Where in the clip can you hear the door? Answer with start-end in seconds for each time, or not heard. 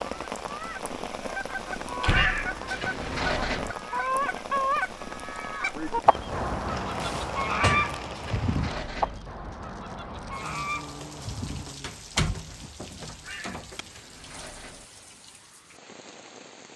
1.8-2.5, 7.0-8.0, 11.8-13.8.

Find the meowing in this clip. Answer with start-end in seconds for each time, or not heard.
2.0-3.8, 7.5-9.2, 13.2-14.8.